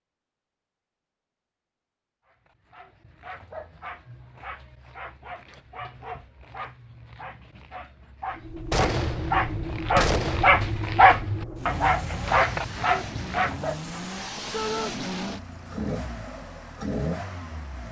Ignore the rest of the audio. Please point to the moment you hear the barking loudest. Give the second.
11 s.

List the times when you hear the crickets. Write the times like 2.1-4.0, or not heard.
not heard.